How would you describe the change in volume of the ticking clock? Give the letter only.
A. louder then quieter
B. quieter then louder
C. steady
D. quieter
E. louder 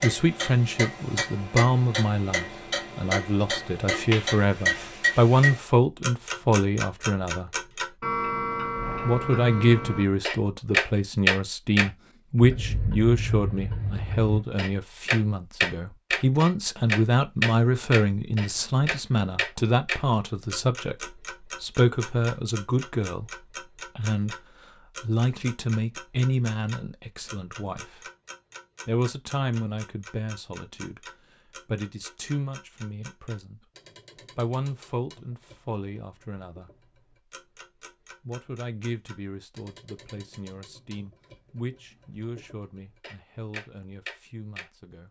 D.